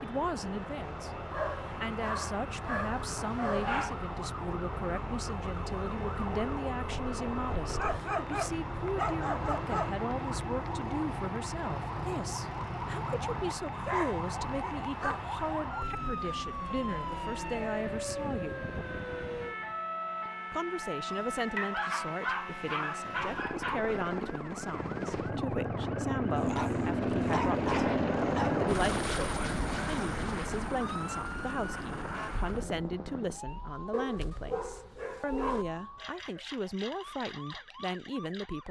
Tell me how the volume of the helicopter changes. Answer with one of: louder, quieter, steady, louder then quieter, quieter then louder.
louder.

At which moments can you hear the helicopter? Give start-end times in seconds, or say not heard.
0.0-33.4.